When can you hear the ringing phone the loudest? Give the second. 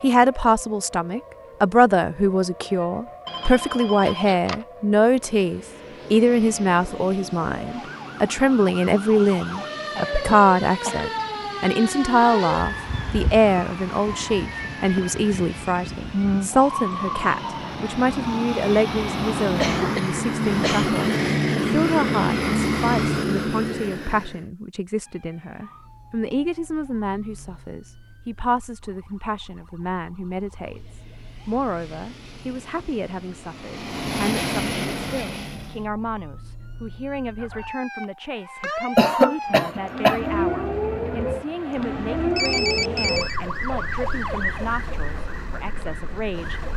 43 s.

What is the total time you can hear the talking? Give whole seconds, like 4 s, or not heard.
47 s.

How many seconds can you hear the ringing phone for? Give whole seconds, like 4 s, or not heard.
3 s.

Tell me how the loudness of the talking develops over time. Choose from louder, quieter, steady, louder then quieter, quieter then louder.
quieter.